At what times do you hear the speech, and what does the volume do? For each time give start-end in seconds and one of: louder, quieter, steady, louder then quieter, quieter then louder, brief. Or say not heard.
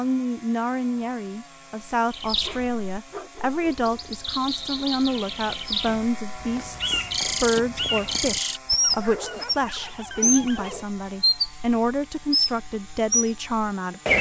0.0-14.1 steady.